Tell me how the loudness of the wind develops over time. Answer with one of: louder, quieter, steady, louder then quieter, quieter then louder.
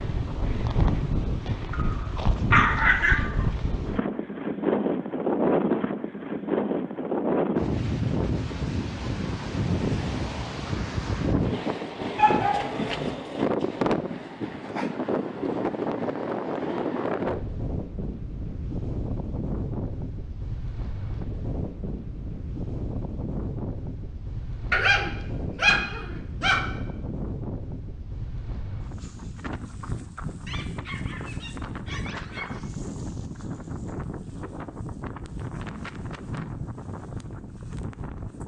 quieter.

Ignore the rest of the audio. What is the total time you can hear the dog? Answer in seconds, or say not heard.
7 s.